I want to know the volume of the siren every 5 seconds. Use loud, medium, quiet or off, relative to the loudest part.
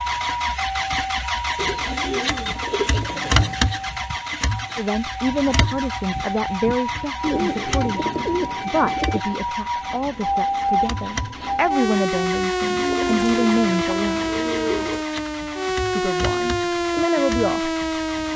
medium, medium, loud, loud.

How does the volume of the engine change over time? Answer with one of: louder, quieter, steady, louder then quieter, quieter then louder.
quieter.